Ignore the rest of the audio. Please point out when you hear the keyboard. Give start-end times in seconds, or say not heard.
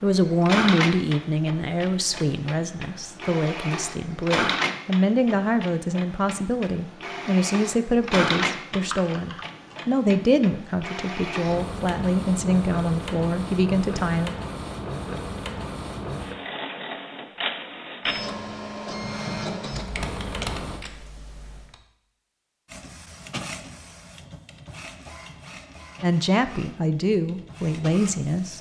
8.7-9.8, 19.7-21.8.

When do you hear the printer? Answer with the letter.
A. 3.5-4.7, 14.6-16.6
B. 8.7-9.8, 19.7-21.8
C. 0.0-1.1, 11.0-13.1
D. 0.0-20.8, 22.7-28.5
D.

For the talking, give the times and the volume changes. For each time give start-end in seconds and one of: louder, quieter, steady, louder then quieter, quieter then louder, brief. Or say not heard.
0.0-14.3 steady
26.0-28.5 brief.